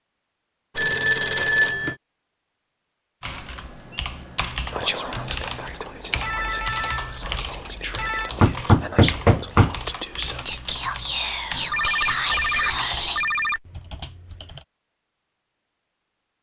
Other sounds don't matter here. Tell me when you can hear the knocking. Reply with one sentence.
You can hear the knocking from 8.4 to 9.8 s.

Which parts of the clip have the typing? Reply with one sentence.
You can hear the typing from 3.2 to 14.7 s.